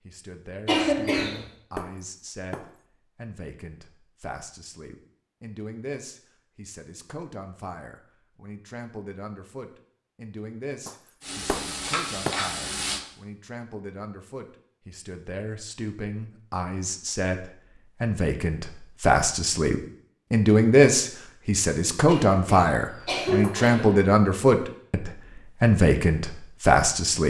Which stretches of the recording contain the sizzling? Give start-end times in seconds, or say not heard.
11.2-13.0.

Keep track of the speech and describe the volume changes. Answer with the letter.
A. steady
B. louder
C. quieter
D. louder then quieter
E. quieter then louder
B.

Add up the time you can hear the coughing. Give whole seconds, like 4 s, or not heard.
3 s.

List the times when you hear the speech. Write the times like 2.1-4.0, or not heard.
0.1-27.2.